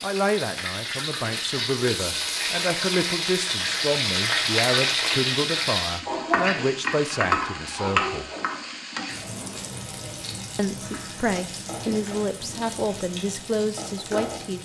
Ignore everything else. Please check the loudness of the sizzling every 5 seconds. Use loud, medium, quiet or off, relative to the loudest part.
loud, loud, medium.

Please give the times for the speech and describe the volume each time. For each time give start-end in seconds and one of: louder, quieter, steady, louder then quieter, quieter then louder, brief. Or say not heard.
0.0-8.2 steady
10.6-14.6 steady.